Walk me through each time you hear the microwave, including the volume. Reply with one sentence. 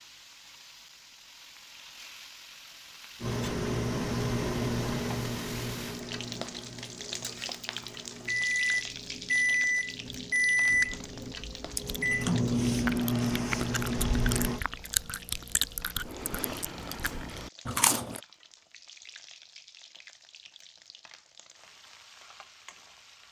The microwave can be heard from 3.2 to 14.6 s, getting quieter then louder.